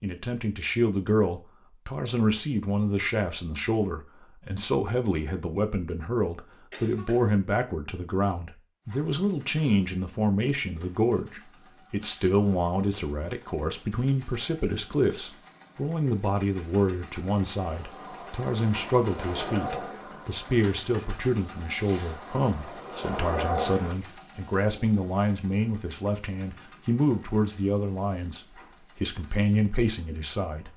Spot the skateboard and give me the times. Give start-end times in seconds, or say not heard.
17.6-23.9.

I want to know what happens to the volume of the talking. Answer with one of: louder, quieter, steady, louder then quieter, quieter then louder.
steady.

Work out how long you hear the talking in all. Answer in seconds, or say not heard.
31 s.